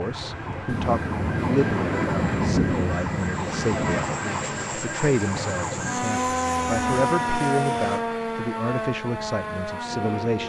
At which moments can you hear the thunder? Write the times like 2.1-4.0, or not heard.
0.7-4.0.